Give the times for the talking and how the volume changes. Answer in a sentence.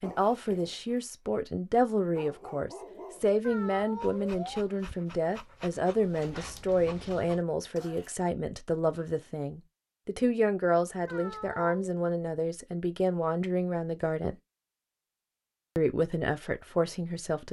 The talking can be heard from 0.0 to 14.3 s, at a steady volume; and briefly from 15.8 to 17.4 s.